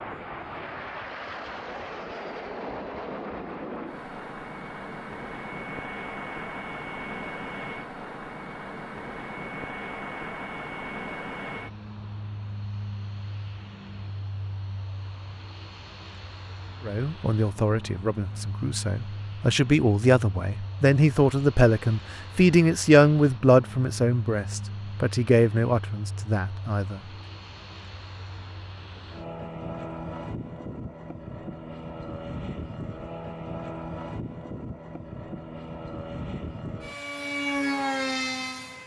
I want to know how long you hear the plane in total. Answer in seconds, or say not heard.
39 s.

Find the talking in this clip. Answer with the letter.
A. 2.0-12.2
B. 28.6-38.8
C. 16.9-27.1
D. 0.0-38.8
C.